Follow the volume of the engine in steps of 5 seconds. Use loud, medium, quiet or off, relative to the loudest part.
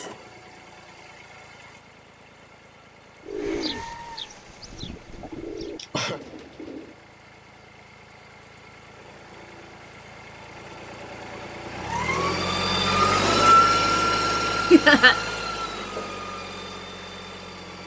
quiet, quiet, loud, medium.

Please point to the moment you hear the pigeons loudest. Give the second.
4 s.